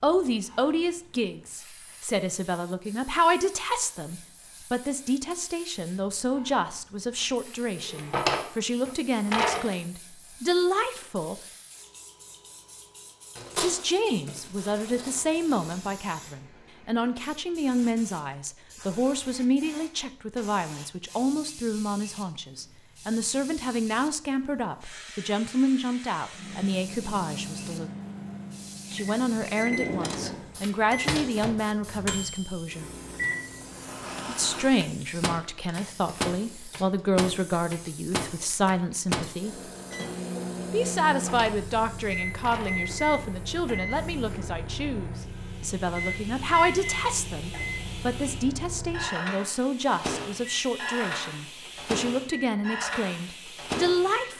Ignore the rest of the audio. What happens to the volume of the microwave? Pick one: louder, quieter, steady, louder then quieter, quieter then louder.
steady.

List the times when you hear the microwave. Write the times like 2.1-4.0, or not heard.
26.4-54.3.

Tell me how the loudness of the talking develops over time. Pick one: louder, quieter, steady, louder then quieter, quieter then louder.
steady.